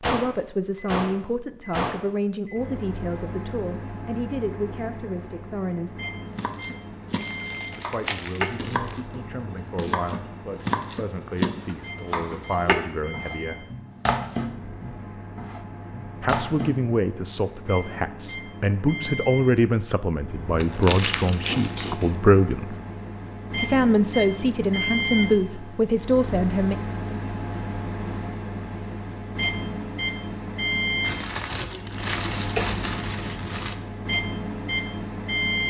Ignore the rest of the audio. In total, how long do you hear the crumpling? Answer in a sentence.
The crumpling can be heard for 6 seconds in total.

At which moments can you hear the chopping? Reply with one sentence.
You can hear the chopping from 6.3 to 16.9 s.